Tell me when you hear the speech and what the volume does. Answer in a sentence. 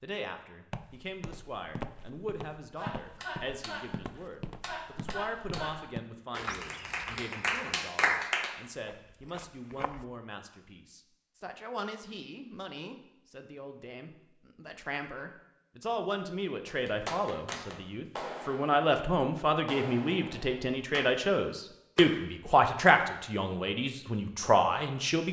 You can hear the speech from 0.0 to 25.2 s, getting louder.